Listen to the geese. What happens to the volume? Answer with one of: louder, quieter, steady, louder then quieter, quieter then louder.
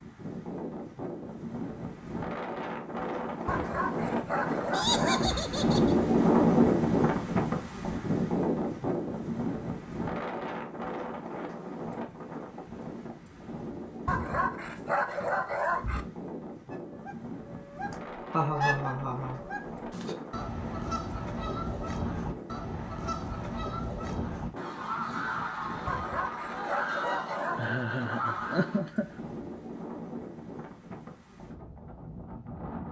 steady.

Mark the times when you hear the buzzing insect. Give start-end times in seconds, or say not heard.
not heard.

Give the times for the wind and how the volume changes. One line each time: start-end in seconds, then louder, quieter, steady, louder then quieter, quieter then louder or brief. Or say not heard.
0.0-32.8 quieter.